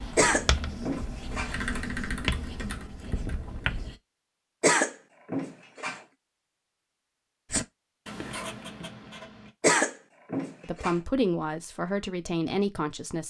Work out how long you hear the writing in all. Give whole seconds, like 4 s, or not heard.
6 s.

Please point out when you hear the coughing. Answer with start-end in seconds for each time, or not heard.
0.1-1.8, 4.6-6.0, 9.6-10.9.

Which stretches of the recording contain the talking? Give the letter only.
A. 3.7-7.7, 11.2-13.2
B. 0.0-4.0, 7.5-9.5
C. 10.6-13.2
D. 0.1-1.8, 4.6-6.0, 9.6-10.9
C.